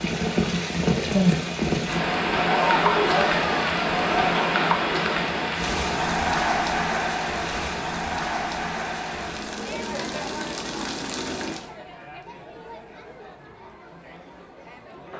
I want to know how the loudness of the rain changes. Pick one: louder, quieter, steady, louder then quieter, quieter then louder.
quieter.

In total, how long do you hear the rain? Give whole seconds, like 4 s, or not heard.
12 s.